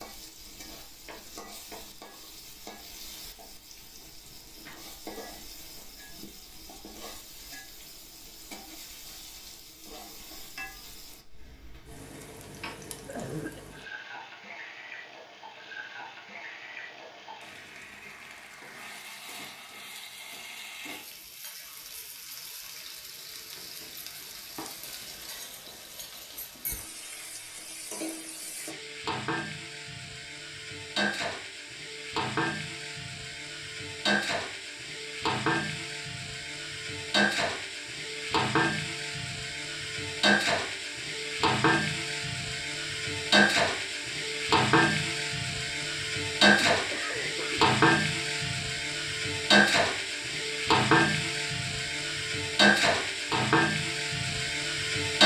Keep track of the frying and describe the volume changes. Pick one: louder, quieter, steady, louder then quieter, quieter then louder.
louder.